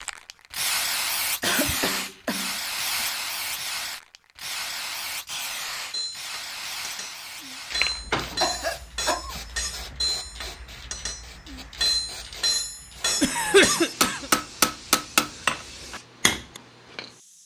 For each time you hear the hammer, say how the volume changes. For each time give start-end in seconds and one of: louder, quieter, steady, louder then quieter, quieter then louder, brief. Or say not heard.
5.9-16.6 louder.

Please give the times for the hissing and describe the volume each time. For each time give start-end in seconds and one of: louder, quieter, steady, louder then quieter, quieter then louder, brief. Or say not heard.
0.0-17.4 quieter.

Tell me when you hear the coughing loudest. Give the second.
14 s.